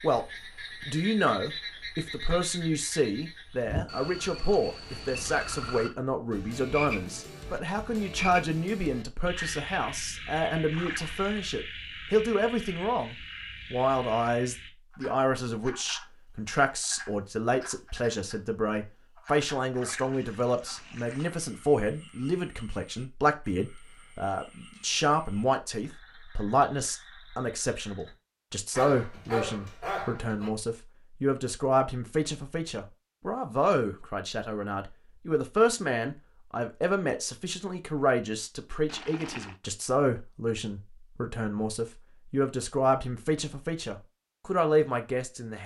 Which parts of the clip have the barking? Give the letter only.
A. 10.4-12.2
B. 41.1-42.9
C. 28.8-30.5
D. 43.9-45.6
C.